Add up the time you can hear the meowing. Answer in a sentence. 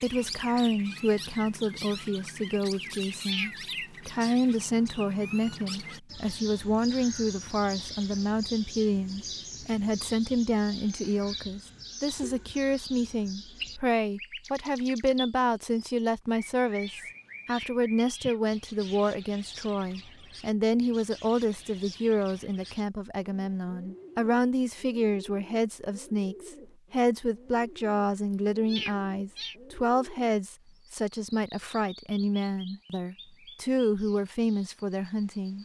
The meowing can be heard for 4 seconds in total.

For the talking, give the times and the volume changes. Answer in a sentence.
You can hear the talking from 0.0 to 35.5 s, at a steady volume.